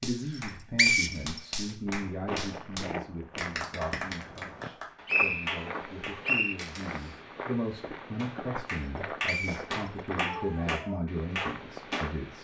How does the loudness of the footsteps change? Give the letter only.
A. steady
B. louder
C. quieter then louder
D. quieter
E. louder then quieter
A.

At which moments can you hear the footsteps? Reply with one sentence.
The footsteps can be heard from 1.9 to 12.3 s.